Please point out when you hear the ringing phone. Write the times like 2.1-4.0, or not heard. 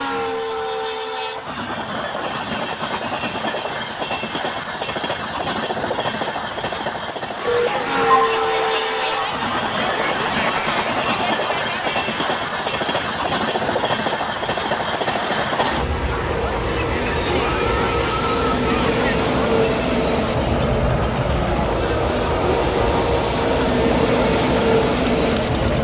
7.5-8.3.